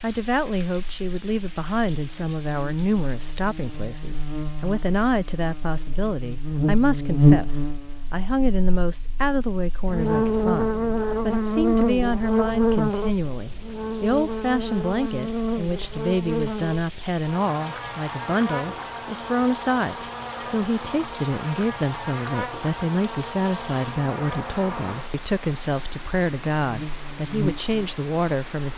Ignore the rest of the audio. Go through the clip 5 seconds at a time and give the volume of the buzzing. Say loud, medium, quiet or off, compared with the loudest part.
quiet, loud, loud, medium, medium, medium.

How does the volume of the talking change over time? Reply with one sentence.
The volume of the talking stays about the same.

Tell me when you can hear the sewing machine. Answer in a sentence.
The sewing machine can't be heard in this clip.